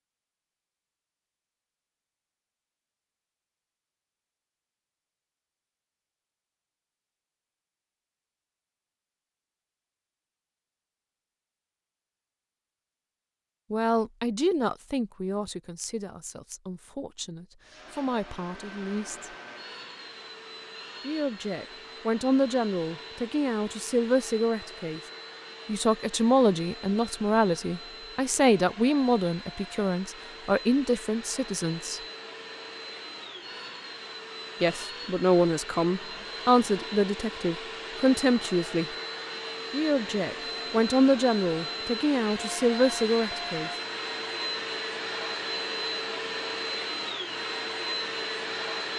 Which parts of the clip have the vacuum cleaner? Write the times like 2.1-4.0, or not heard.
17.6-48.9.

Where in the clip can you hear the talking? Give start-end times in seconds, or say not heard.
13.7-19.3, 21.0-25.0, 25.6-32.0, 34.6-38.9, 39.7-43.7.